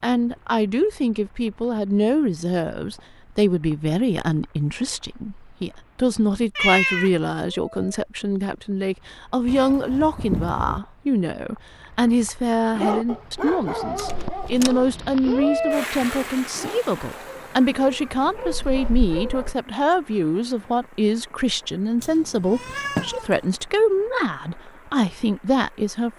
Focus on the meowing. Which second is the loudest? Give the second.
7 s.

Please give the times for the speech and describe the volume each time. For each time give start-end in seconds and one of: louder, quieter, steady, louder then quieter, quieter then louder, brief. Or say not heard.
0.0-26.1 steady.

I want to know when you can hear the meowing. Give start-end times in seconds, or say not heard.
6.5-7.1, 9.4-10.8, 22.0-23.4.